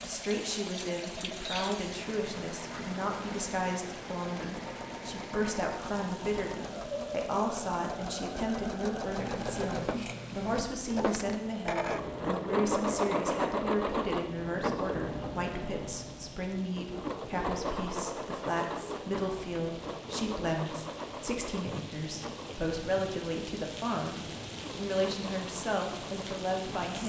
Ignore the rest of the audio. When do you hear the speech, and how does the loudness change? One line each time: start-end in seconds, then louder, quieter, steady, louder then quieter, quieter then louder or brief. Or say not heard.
0.0-27.0 steady.